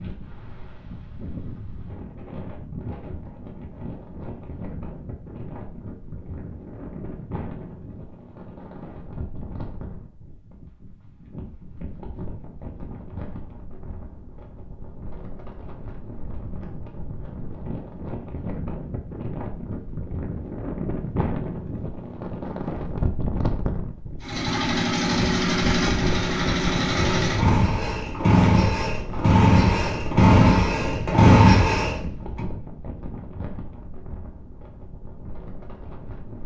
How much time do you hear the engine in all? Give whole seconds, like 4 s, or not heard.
8 s.